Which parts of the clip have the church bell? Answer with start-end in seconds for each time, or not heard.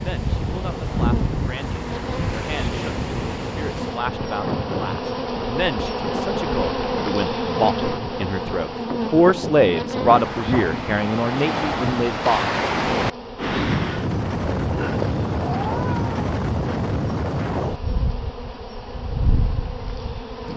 not heard.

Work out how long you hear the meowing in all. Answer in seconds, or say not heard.
2 s.